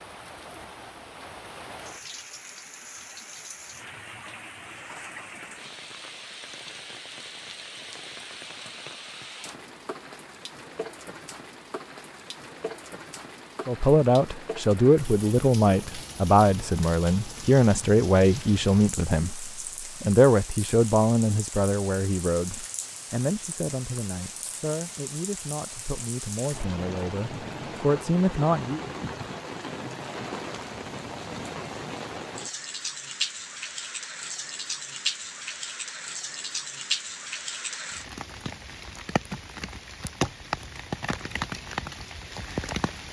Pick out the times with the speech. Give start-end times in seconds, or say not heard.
13.7-28.8.